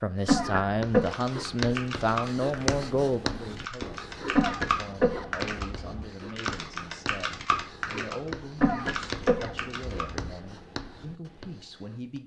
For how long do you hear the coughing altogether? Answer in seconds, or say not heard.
4 s.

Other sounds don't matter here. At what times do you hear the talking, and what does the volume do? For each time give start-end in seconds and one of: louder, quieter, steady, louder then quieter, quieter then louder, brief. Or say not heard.
0.0-12.2 quieter.